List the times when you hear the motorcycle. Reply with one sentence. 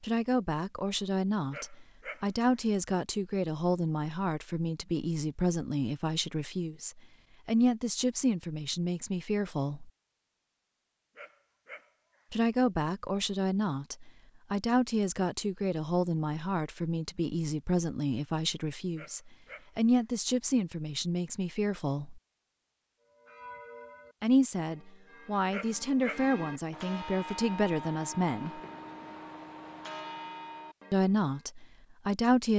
You can't hear the motorcycle here.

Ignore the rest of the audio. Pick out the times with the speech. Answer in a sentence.
The speech can be heard from 0.0 to 9.9 s, from 12.3 to 22.2 s, from 24.2 to 28.6 s and from 30.9 to 32.5 s.